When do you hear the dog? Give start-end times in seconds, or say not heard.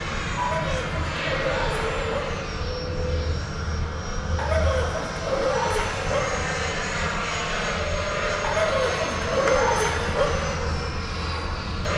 0.3-2.4, 4.3-6.4, 8.4-10.4.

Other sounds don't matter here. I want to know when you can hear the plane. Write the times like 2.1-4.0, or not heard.
0.0-11.9.